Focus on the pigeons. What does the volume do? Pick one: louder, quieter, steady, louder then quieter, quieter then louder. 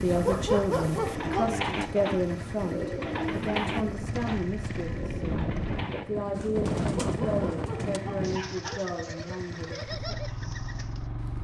quieter.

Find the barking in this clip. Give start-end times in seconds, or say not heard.
0.1-1.6, 6.9-8.8.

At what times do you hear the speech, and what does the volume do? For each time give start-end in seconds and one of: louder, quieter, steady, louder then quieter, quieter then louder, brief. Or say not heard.
0.0-10.6 quieter.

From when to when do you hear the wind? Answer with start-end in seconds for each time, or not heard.
0.0-8.4.